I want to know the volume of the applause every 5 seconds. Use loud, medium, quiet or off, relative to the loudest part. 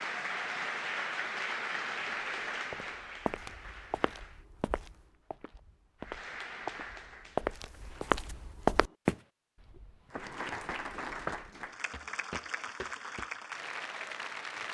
loud, medium, loud.